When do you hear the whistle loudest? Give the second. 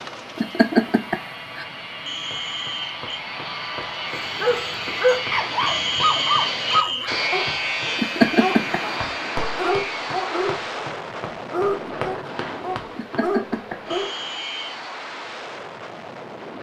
6 s.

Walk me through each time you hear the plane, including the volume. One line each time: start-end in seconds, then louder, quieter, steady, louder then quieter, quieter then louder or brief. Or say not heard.
0.0-16.5 louder then quieter.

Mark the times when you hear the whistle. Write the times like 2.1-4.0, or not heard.
2.0-3.0, 5.7-7.1, 13.9-14.8.